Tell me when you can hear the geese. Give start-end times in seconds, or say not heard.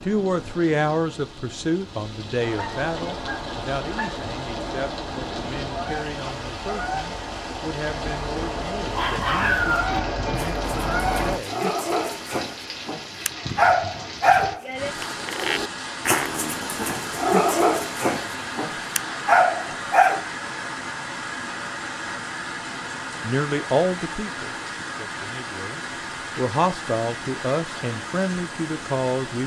2.4-11.4.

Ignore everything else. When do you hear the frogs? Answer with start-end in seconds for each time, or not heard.
not heard.